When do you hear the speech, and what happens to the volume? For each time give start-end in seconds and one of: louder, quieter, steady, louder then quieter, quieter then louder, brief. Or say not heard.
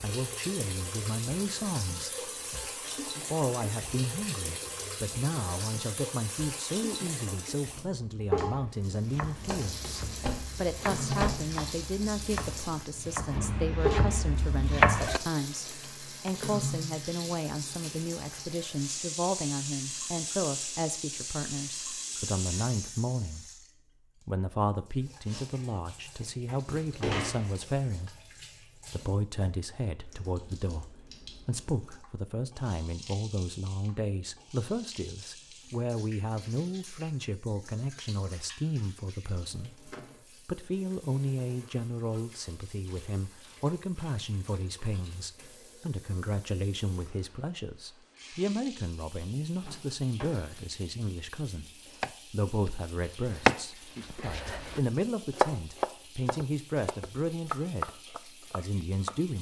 0.0-2.3 brief
3.3-23.6 steady
24.2-59.3 steady.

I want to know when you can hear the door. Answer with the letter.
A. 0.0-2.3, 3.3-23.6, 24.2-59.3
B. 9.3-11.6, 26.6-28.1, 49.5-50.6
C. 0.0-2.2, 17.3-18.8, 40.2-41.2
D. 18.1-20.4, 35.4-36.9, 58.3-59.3
B.